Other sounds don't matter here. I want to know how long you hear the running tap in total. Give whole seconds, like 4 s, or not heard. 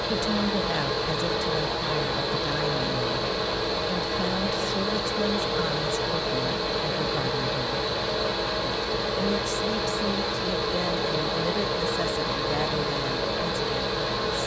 not heard.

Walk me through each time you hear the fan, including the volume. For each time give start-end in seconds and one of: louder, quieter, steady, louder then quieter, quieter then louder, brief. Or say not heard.
0.0-14.4 steady.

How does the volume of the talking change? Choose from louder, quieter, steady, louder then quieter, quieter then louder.
steady.